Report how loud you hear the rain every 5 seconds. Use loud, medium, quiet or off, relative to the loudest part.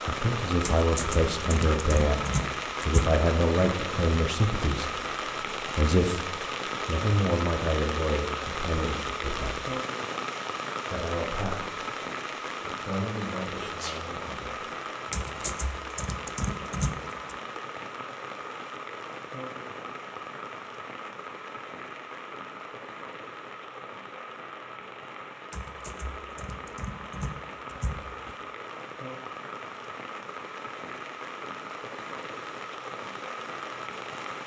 loud, loud, loud, medium, medium, medium, medium.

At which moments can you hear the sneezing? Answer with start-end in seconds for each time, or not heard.
13.5-14.1.